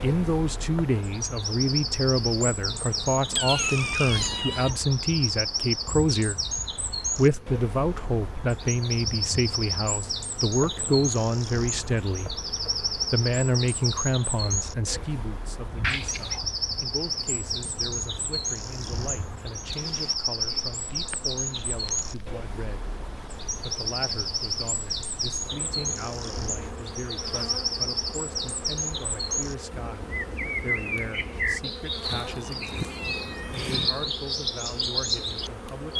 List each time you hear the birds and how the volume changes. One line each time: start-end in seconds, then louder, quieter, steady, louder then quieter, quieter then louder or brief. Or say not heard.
0.0-35.9 steady.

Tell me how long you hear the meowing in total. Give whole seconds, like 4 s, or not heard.
4 s.